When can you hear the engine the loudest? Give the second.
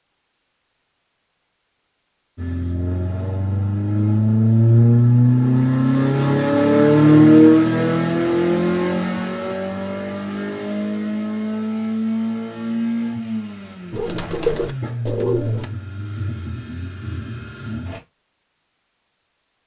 7 s.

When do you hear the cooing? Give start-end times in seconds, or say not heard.
13.9-15.7.